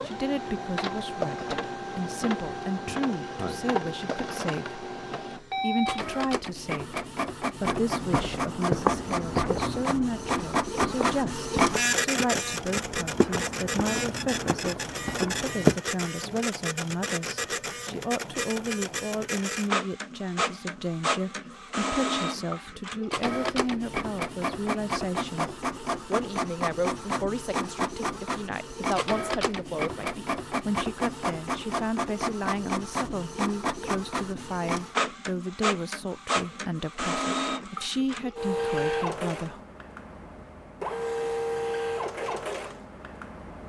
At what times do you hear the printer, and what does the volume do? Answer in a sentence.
The printer can be heard from 0.0 to 43.6 s, at a steady volume.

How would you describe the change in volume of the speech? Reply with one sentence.
The volume of the speech stays about the same.